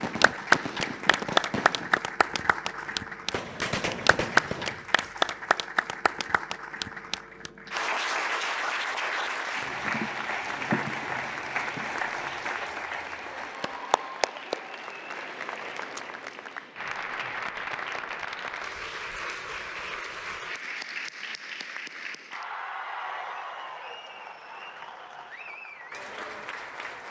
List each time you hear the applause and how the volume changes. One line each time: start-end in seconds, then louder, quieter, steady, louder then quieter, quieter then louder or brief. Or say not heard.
0.0-27.0 quieter.